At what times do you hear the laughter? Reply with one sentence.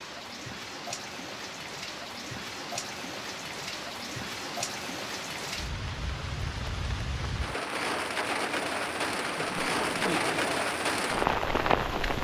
You can hear the laughter from 9.3 to 10.7 s.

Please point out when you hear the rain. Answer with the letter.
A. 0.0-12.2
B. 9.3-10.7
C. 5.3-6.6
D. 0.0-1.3
A.